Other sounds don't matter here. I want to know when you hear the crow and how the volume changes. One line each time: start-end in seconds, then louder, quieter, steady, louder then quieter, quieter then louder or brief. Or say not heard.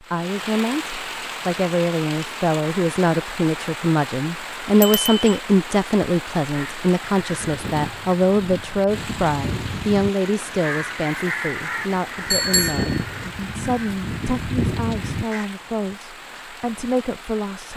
6.5-15.4 louder.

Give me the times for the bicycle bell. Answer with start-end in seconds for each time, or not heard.
4.8-5.4, 12.3-13.3.